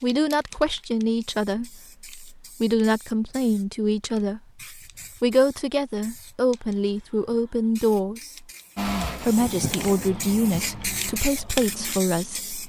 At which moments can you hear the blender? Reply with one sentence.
You can hear the blender from 8.8 to 11.2 s.